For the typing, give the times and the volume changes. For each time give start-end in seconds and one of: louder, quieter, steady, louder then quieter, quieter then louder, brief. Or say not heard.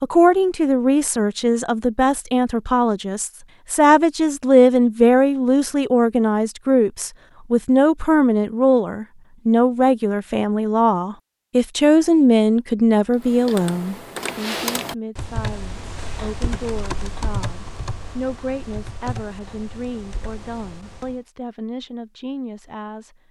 13.1-21.2 quieter.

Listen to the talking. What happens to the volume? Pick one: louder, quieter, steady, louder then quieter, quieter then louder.
quieter.